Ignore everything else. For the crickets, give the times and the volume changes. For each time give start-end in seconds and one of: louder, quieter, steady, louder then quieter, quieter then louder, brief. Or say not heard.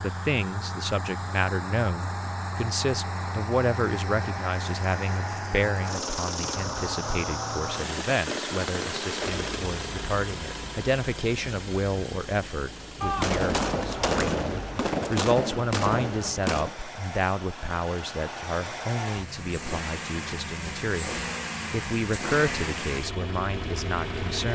not heard.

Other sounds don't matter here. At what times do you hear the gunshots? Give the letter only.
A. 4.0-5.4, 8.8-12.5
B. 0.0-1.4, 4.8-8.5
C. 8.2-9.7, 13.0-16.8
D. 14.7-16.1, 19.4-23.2
C.